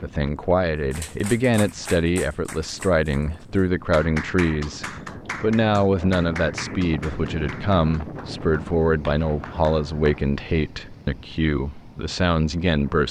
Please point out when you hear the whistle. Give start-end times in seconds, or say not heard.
not heard.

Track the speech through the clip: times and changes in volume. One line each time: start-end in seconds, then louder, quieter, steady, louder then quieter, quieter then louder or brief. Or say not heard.
0.0-13.0 steady.